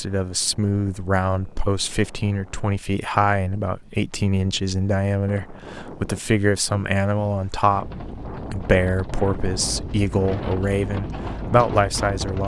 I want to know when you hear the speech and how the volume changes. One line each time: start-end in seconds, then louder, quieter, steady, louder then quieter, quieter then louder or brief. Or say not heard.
0.0-12.4 steady.